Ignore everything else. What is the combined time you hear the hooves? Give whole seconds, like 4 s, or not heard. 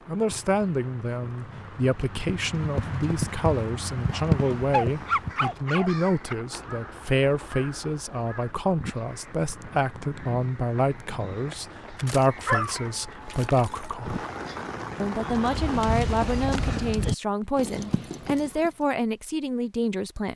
9 s.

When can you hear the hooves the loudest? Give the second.
4 s.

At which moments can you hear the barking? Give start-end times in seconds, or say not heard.
4.3-6.3, 11.9-14.6.